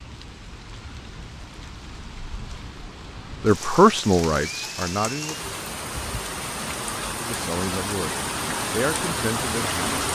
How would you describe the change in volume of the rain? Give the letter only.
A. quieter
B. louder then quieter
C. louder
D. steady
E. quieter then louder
C.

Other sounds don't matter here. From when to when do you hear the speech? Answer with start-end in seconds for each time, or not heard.
3.4-5.5, 7.2-10.0.